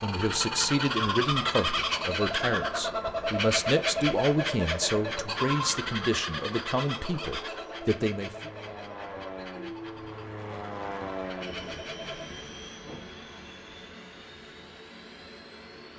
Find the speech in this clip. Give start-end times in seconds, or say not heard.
0.0-8.5.